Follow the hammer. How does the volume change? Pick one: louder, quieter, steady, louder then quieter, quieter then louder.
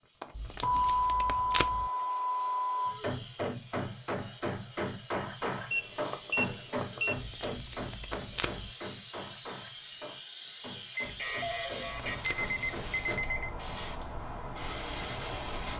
quieter.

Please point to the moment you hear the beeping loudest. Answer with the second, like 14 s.
1 s.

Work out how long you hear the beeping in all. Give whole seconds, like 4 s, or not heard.
7 s.